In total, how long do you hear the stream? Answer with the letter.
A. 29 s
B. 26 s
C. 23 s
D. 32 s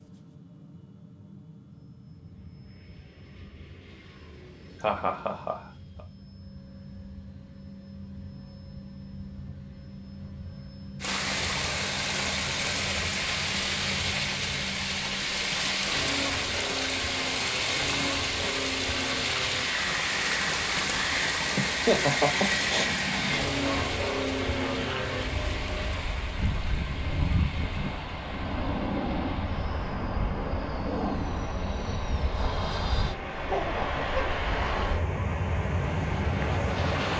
B.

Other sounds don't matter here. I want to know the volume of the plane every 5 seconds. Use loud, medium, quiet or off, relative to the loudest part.
quiet, quiet, medium, medium, loud, loud, loud, loud.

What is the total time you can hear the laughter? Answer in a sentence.
The laughter can be heard for 3 seconds in total.